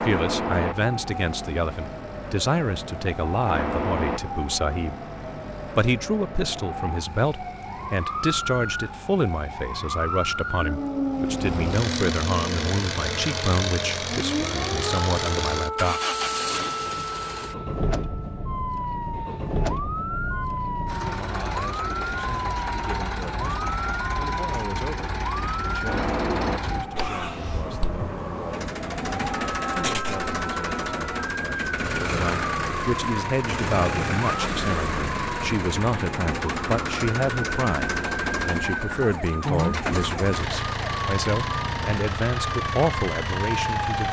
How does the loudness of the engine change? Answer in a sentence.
The volume of the engine goes up.